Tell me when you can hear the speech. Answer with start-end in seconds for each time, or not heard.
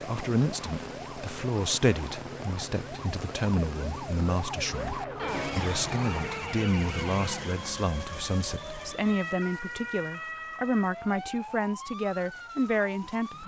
0.0-13.4.